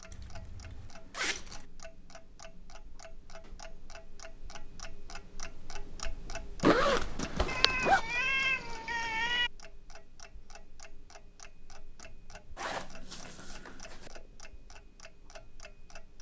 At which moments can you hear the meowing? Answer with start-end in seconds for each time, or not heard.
7.5-9.5.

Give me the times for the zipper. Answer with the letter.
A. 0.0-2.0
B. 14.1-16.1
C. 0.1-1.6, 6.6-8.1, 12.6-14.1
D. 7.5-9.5
C.